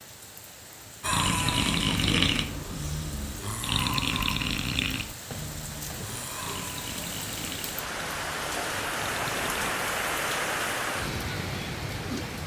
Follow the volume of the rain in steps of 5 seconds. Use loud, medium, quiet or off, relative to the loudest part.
quiet, loud, loud.